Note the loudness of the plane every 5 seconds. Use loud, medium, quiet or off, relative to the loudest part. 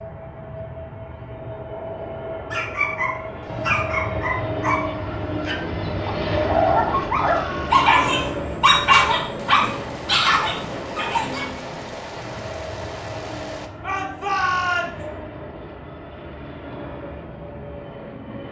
loud, loud, medium, medium.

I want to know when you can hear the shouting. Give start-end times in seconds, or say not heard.
3.4-3.9, 6.8-7.8, 13.8-14.9.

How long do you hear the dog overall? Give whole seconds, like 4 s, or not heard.
9 s.